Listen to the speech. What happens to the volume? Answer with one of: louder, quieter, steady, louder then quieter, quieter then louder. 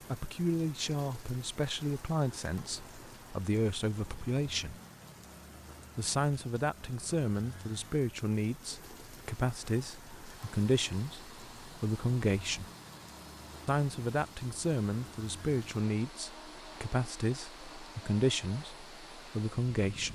steady.